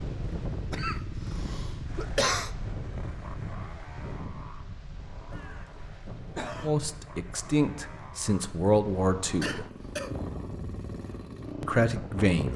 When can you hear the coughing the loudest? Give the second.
2 s.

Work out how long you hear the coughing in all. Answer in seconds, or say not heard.
4 s.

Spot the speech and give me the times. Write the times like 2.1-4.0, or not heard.
6.6-9.7, 11.6-12.5.